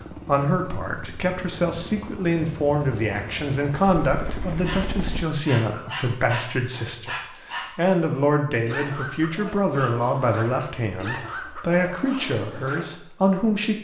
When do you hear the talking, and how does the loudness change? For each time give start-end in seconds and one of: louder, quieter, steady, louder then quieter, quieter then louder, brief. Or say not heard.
0.2-13.7 steady.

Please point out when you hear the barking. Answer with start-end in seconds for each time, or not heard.
4.5-12.9.